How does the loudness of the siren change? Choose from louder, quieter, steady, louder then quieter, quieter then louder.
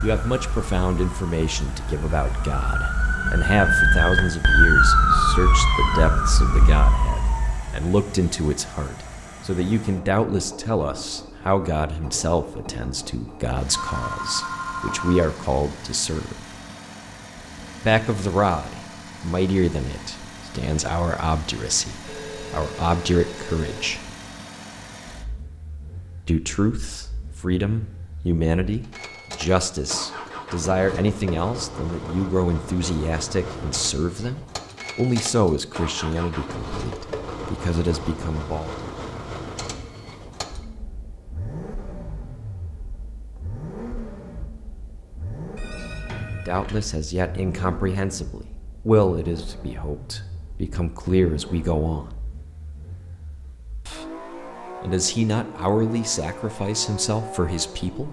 louder then quieter.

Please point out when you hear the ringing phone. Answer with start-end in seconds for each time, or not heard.
13.7-15.2, 22.0-24.1, 45.5-46.8.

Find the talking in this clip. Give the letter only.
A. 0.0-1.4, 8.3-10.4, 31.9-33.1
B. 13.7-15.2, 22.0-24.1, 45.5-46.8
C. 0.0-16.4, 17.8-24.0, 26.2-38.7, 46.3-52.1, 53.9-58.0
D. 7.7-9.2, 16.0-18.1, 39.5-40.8
C.